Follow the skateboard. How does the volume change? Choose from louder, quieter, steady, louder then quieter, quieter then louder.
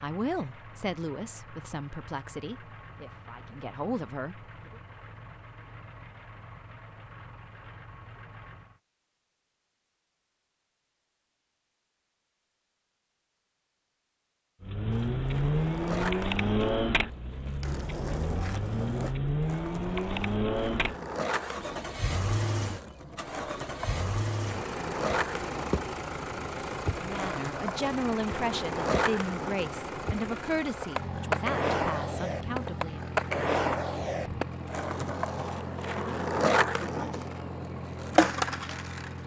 louder.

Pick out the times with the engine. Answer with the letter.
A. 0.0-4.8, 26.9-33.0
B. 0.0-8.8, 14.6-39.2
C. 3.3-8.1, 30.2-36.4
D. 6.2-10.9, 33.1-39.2
B.